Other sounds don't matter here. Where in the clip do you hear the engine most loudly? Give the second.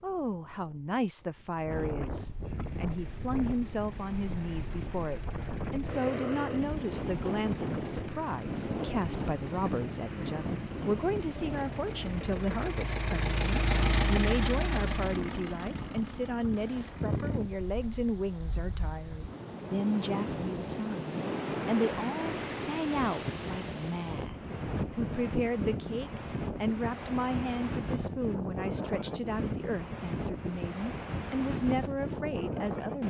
14 s.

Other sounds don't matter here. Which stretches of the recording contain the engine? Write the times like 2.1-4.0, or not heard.
2.6-17.4.